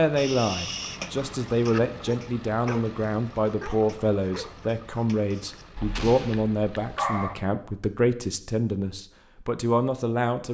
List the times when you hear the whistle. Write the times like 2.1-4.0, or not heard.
not heard.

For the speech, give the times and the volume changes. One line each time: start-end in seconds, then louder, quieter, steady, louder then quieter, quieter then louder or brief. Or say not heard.
0.0-10.4 steady.